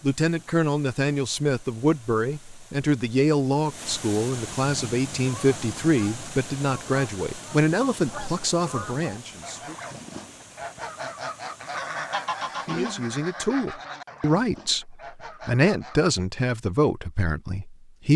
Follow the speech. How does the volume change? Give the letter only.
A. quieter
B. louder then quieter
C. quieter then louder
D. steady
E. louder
D.